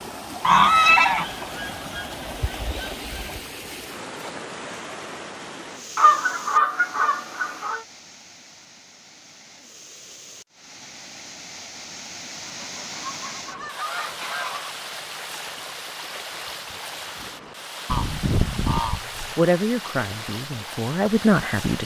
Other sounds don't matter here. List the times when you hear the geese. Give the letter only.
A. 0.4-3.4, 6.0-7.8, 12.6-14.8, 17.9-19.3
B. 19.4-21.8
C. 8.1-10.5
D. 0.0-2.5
A.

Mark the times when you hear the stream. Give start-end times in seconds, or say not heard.
0.0-21.8.